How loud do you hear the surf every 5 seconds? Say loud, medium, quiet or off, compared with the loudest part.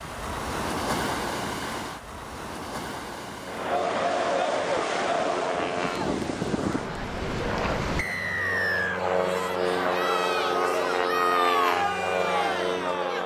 loud, loud, off.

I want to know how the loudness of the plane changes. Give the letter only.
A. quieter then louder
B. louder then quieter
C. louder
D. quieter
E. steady
C.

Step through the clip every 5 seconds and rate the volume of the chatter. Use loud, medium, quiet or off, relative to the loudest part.
loud, medium, loud.